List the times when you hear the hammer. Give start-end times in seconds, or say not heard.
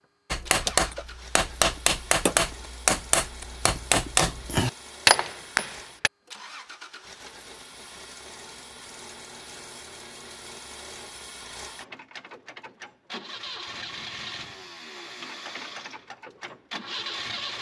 0.3-6.1.